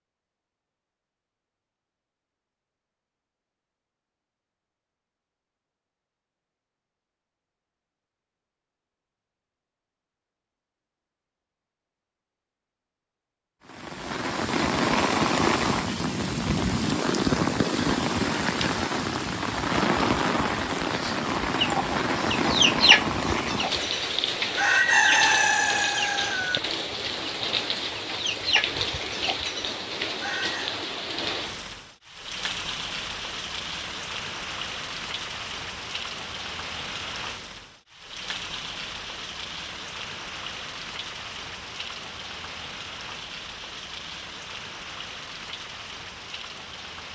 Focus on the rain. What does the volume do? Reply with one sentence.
The loudness of the rain goes down.